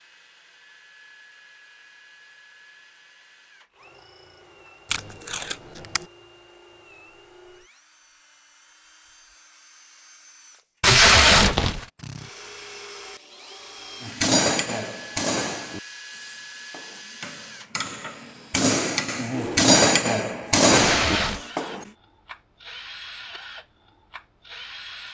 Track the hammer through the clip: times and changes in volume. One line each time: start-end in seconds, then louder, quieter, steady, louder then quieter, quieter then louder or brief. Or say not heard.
14.0-21.9 quieter then louder.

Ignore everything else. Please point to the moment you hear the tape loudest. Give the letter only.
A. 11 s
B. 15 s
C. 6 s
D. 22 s
A.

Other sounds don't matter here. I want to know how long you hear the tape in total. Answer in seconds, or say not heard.
3 s.